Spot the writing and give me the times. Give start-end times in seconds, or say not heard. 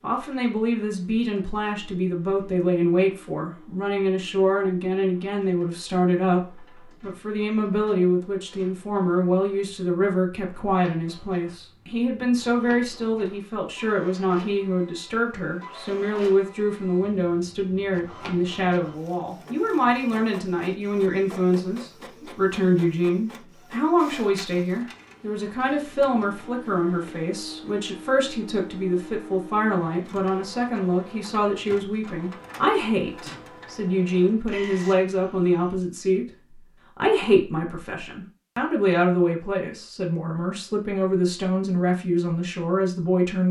not heard.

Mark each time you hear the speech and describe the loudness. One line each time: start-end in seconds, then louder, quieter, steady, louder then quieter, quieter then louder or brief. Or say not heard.
0.0-43.4 steady.